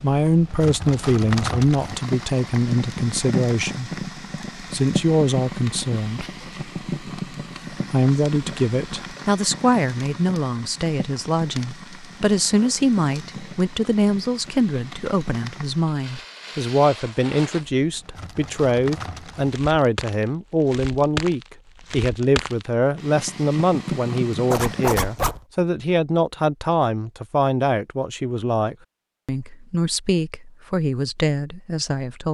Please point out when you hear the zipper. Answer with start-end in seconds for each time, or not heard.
24.5-25.4.